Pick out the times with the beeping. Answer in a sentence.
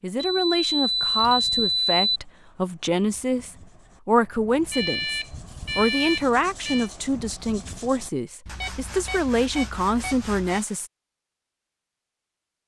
You can hear the beeping from 0.1 to 2.2 s, from 4.7 to 6.9 s and from 8.4 to 10.6 s.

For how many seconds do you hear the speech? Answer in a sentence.
You can hear the speech for 11 seconds altogether.